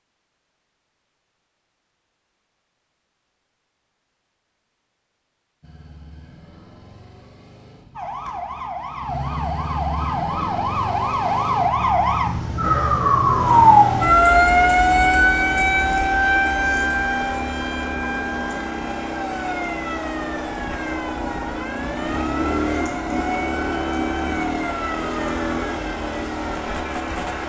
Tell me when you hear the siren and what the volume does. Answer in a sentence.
The siren can be heard from 8.0 to 27.4 s, getting louder then quieter.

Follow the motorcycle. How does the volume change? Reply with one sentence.
The volume of the motorcycle goes up.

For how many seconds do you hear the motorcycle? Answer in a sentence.
You can hear the motorcycle for 22 seconds altogether.